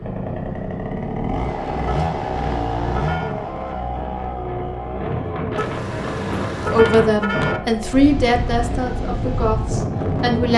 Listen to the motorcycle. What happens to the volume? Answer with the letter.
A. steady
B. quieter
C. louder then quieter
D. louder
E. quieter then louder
B.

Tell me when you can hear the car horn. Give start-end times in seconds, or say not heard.
2.0-3.4, 5.5-7.6.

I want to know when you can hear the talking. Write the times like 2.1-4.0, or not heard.
6.7-10.5.